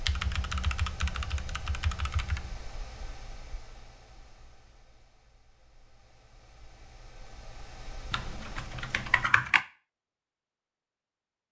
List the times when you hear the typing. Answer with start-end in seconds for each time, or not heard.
0.1-2.5, 8.1-9.7.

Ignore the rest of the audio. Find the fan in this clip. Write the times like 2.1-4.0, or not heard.
0.0-9.3.